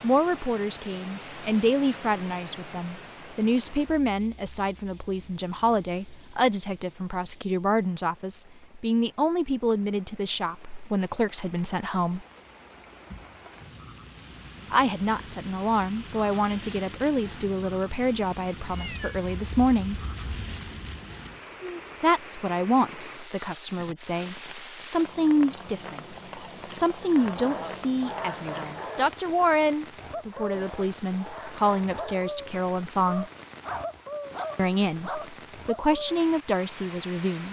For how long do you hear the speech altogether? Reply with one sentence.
You can hear the speech for 32 seconds altogether.